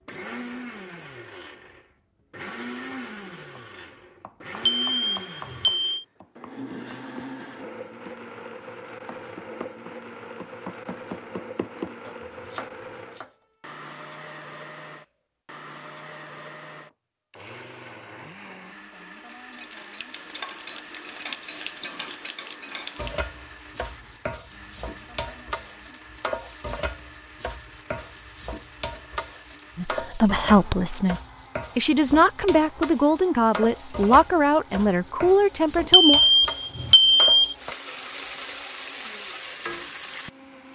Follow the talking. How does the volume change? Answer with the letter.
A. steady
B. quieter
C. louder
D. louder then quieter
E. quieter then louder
A.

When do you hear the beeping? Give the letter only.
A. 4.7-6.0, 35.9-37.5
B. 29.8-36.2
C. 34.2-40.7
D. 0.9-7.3
A.